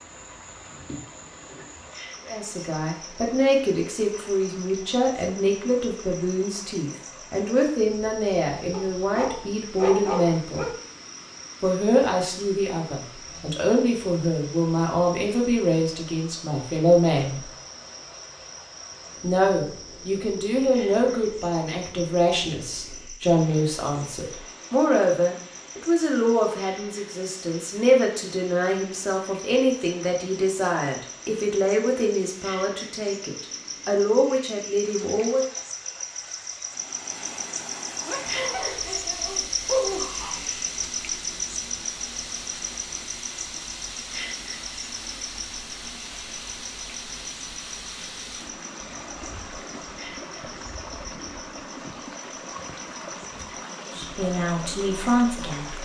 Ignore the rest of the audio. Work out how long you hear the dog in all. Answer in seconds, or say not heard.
4 s.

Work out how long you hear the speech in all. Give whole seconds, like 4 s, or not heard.
32 s.